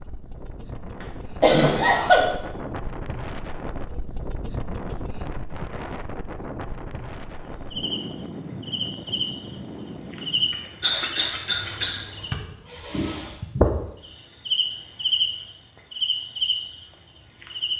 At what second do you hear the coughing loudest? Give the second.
2 s.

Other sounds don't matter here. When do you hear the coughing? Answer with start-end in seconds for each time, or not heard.
1.0-2.3, 10.8-12.0.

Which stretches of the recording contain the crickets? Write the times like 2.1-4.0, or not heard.
7.7-17.7.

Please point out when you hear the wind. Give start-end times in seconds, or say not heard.
0.0-10.8.